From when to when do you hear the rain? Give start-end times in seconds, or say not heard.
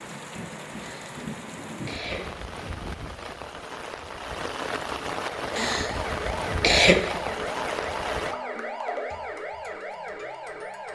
0.0-8.3.